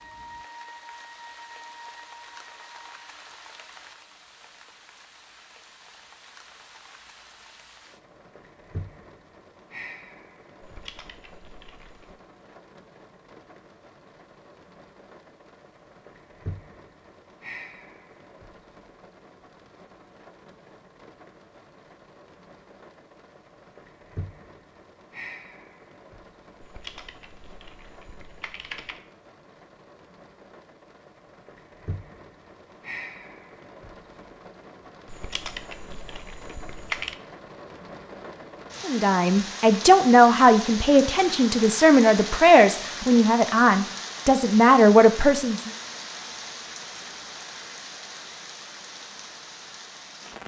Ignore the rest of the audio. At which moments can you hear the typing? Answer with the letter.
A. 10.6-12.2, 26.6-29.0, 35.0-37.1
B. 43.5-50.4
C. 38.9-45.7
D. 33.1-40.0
A.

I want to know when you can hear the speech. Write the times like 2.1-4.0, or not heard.
38.9-45.7.